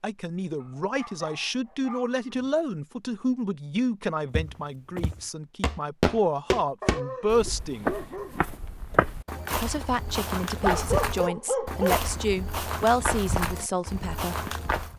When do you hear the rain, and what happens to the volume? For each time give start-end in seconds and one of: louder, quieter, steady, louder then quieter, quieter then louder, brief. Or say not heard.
not heard.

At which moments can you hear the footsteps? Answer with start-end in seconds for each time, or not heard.
4.3-14.9.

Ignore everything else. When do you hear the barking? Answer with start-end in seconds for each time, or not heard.
0.6-2.5, 6.8-8.5, 10.5-12.0.